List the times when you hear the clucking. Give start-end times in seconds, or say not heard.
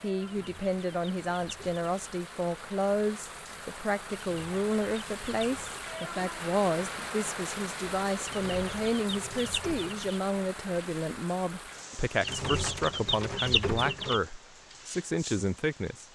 0.2-2.0, 4.2-6.1, 8.2-10.2, 12.2-14.2.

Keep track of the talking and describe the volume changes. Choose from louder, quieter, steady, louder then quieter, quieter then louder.
steady.